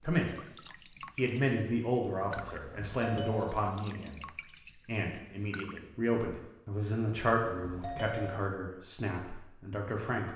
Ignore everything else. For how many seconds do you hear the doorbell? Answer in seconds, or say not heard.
2 s.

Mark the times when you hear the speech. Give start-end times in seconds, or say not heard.
0.0-10.3.